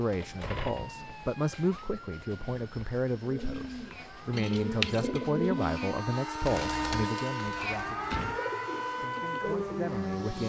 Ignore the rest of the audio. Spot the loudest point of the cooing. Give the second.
5 s.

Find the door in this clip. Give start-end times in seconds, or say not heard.
0.1-0.9, 7.5-8.4.